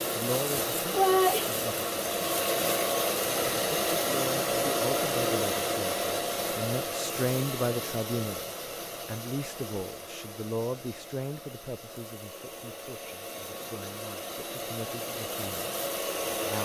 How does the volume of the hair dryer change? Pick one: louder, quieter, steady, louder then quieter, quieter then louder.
quieter then louder.